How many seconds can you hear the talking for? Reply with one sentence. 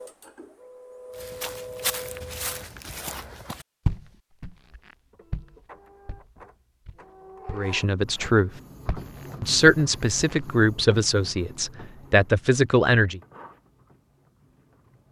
You can hear the talking for 5 seconds altogether.